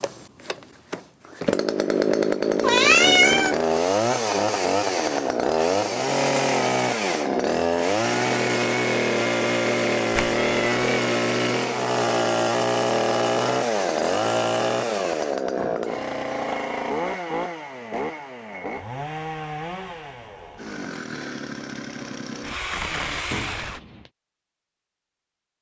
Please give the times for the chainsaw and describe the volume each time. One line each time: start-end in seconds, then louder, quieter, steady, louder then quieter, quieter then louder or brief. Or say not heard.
0.0-23.8 quieter.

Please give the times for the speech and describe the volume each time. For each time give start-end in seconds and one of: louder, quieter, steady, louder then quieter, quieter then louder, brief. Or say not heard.
not heard.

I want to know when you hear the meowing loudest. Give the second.
3 s.